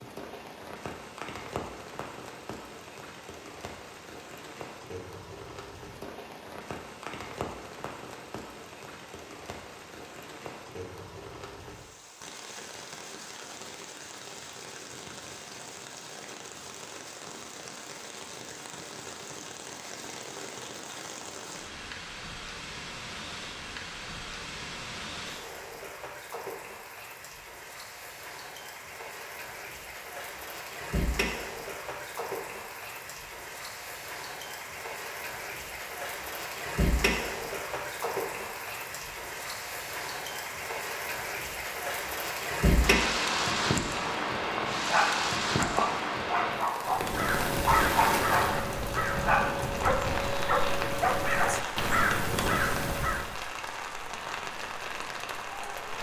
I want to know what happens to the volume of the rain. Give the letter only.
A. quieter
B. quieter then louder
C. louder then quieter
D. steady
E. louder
E.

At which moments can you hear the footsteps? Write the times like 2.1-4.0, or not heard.
not heard.